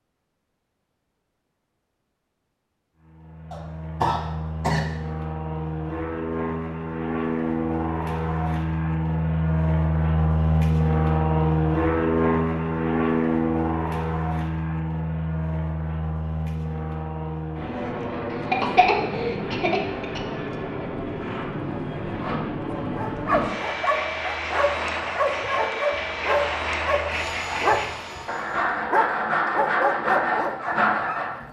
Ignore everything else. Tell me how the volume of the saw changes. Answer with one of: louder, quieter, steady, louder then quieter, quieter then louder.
louder.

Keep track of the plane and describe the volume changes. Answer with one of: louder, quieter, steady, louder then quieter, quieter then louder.
louder then quieter.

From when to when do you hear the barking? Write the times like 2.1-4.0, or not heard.
22.8-31.4.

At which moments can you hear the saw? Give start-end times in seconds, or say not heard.
21.1-31.4.